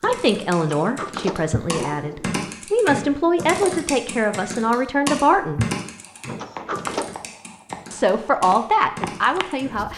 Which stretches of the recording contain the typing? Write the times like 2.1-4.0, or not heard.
0.0-9.7.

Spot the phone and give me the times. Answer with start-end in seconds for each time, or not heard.
not heard.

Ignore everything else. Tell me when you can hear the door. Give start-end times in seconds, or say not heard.
0.7-2.5, 6.2-7.2.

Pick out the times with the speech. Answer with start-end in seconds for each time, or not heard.
0.0-5.7, 7.9-9.9.